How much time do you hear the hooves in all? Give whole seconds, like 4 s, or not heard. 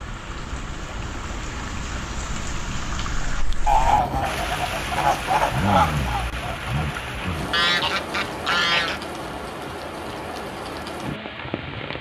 not heard.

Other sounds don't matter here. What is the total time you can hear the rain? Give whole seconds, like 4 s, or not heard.
12 s.